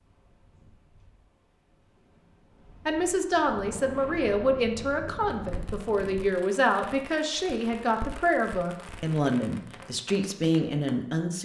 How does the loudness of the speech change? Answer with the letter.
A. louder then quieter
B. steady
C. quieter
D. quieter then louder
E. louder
B.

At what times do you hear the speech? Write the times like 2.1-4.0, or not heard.
2.9-11.3.